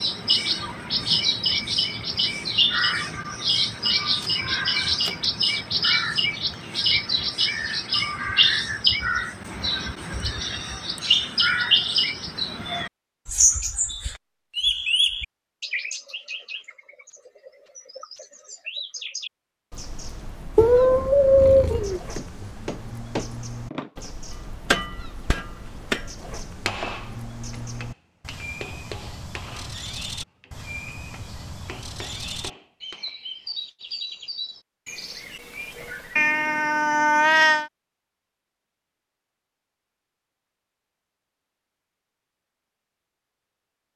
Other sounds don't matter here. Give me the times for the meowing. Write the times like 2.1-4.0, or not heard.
3.9-5.2, 20.6-22.0, 36.1-37.7.